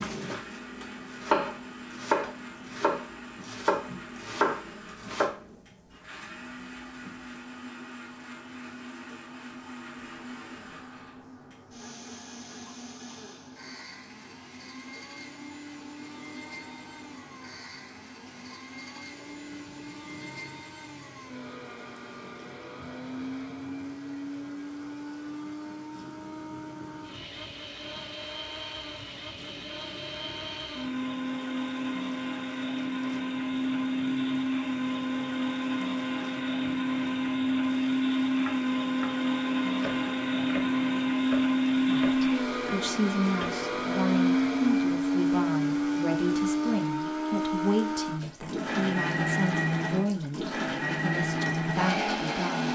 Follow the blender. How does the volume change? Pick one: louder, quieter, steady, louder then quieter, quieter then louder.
louder.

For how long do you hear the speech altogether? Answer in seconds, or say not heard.
11 s.